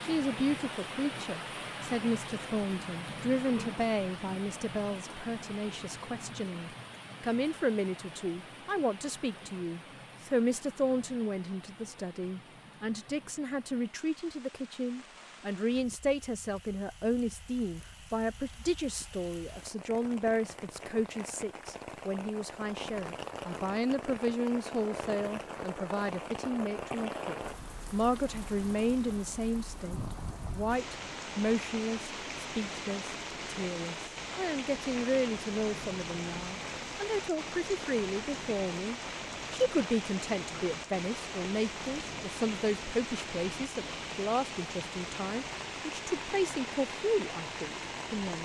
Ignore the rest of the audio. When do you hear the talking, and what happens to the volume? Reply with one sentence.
The talking can be heard from 0.0 to 48.4 s, at a steady volume.